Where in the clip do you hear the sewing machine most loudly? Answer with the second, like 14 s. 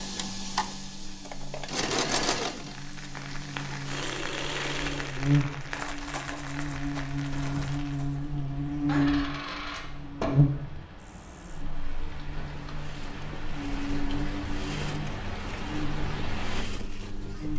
2 s.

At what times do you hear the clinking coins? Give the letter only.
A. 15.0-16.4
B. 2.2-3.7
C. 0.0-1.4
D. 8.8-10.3
D.